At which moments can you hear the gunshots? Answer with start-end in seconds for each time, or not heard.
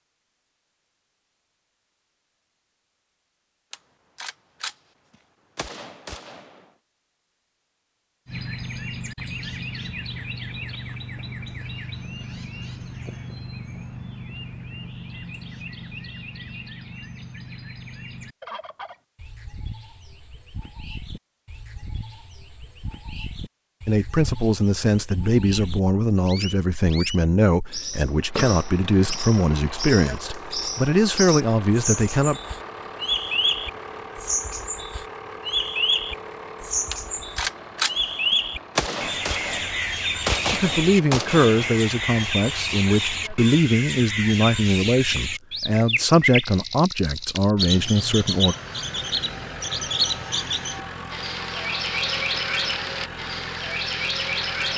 3.7-6.7, 36.9-41.7.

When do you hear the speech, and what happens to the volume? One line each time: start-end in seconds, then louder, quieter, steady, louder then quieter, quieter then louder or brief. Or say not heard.
23.9-32.4 steady
40.5-48.5 steady.